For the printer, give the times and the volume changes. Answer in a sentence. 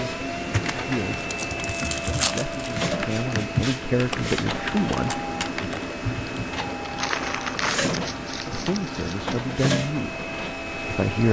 The printer can be heard from 0.0 to 11.2 s, at a steady volume.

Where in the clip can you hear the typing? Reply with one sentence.
You can hear the typing from 0.2 to 6.5 s.